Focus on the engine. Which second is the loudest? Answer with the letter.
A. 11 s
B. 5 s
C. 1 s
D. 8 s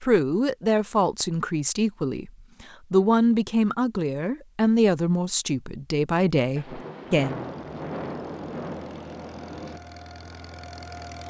A.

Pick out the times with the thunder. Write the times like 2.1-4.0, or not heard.
6.5-9.8.